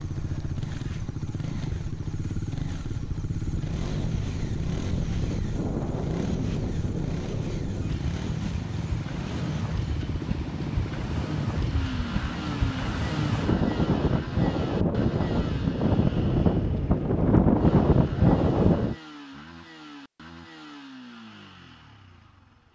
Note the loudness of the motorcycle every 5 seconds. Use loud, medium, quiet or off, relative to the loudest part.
loud, loud, loud, medium, quiet.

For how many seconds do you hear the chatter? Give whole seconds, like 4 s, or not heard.
not heard.